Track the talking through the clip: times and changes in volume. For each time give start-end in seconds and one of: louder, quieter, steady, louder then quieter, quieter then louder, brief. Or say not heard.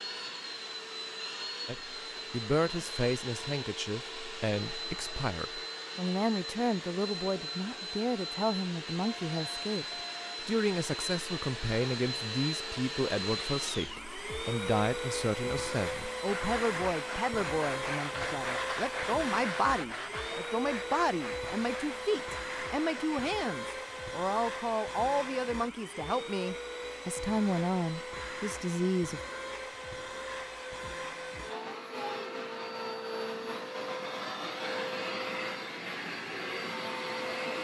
1.6-29.2 steady.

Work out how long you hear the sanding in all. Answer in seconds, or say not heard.
7 s.